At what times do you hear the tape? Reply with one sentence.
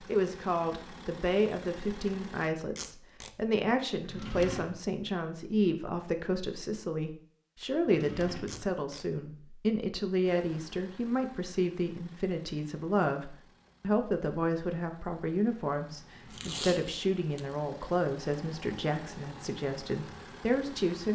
You can hear the tape from 2.8 to 3.3 s, from 8.4 to 9.1 s and from 16.3 to 17.6 s.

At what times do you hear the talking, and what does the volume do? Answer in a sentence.
The talking can be heard from 0.0 to 21.1 s, at a steady volume.